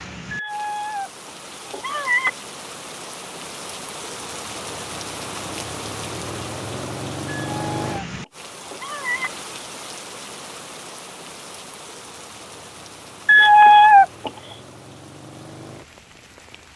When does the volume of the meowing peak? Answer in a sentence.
The loudest moment of the meowing is at 14 seconds.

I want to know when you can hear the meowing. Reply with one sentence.
The meowing can be heard from 0.3 to 1.1 s, from 1.7 to 2.3 s, from 7.3 to 8.1 s, from 8.7 to 9.3 s and from 13.2 to 14.3 s.